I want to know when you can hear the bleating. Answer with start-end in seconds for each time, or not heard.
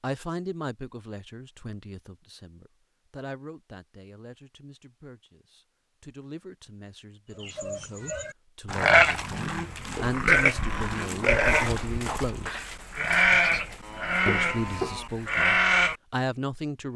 7.4-15.9.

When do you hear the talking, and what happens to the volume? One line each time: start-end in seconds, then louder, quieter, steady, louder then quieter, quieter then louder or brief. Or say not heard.
0.0-12.6 quieter then louder
14.2-16.9 brief.